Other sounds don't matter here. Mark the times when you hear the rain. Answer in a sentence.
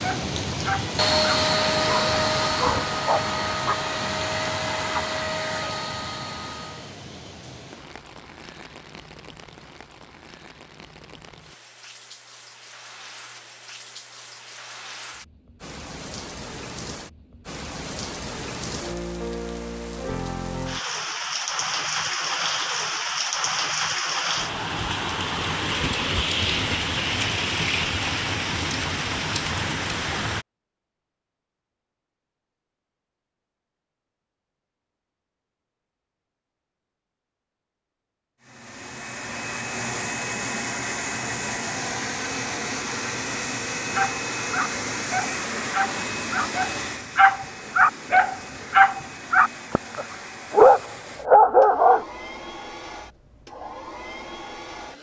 The rain can be heard from 0.0 to 30.4 s.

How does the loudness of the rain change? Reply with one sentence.
The volume of the rain goes down, then up.